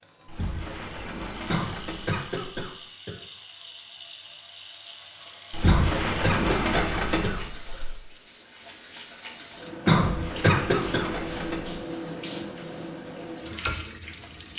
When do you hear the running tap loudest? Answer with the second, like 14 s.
12 s.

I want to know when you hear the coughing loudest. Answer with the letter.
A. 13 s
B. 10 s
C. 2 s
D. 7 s
B.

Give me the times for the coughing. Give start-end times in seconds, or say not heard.
1.4-3.1, 5.7-7.8, 9.8-11.1.